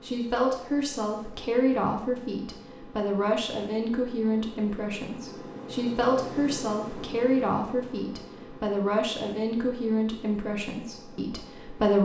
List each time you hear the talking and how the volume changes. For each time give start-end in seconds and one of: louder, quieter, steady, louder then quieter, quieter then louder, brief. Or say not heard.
0.0-11.9 steady.